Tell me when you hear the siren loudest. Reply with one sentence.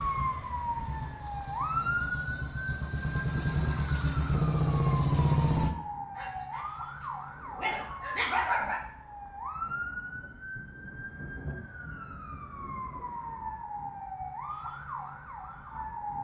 The volume of the siren peaks at 2 seconds.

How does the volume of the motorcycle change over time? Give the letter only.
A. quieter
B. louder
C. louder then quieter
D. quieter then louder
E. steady
B.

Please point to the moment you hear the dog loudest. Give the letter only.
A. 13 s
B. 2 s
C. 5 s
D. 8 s
D.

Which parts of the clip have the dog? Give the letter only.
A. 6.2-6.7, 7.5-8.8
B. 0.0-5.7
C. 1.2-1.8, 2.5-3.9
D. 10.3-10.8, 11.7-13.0
A.